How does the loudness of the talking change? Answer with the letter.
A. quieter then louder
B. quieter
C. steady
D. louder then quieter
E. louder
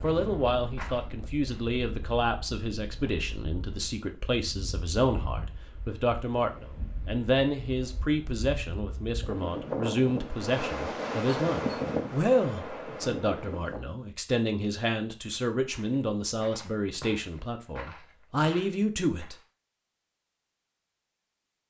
C.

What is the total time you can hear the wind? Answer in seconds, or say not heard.
14 s.